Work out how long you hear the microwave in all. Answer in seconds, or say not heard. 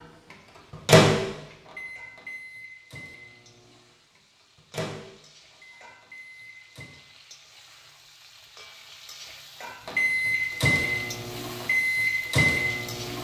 10 s.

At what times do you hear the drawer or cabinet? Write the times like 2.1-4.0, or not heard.
not heard.